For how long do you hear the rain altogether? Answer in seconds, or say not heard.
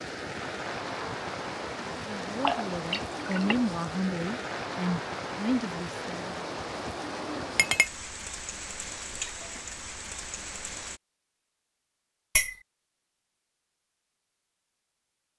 11 s.